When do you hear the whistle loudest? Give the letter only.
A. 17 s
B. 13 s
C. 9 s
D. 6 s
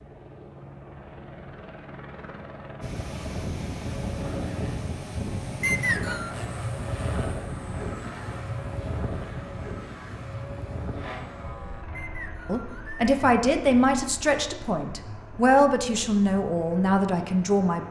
D.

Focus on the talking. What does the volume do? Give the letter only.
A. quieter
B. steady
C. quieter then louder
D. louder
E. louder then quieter
B.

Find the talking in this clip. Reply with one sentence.
You can hear the talking from 12.4 to 17.8 s.